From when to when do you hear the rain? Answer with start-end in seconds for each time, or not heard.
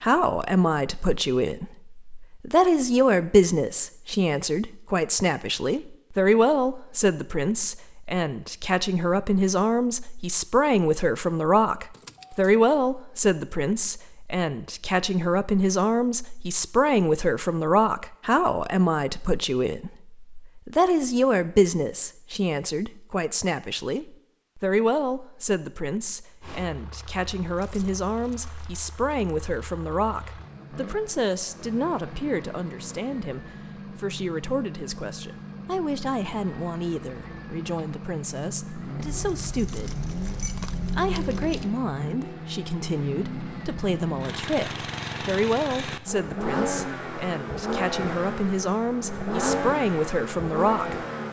not heard.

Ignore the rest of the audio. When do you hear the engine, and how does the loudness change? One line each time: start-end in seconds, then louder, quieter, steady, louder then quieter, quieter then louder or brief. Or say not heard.
26.4-51.2 louder.